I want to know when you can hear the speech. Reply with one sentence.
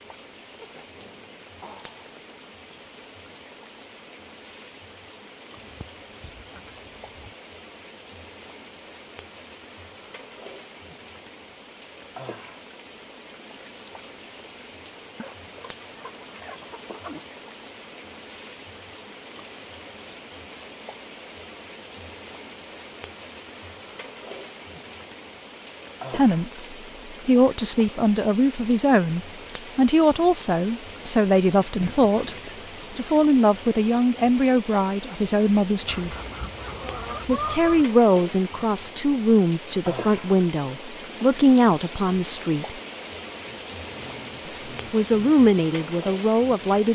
The speech can be heard from 26.1 to 36.1 s, from 37.2 to 42.8 s and from 44.5 to 46.9 s.